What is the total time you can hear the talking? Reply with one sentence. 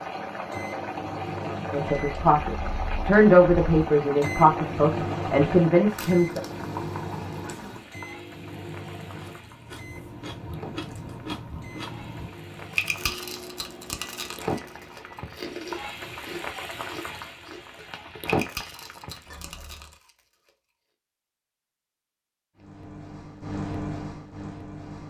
You can hear the talking for 5 seconds altogether.